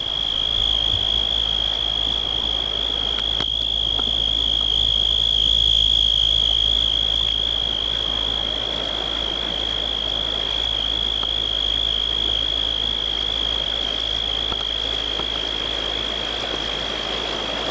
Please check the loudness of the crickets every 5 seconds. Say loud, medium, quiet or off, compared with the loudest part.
loud, loud, loud, medium.